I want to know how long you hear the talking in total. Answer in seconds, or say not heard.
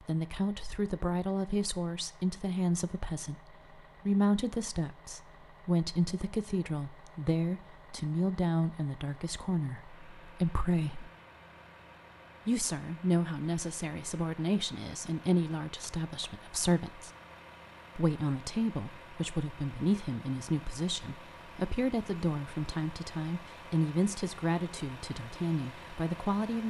24 s.